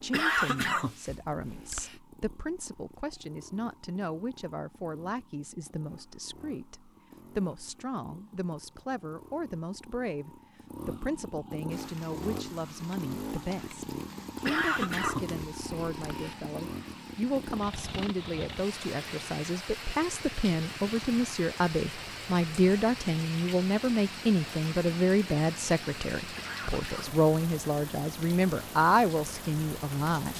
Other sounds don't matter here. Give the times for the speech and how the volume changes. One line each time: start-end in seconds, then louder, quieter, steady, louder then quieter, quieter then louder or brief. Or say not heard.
0.0-30.3 louder.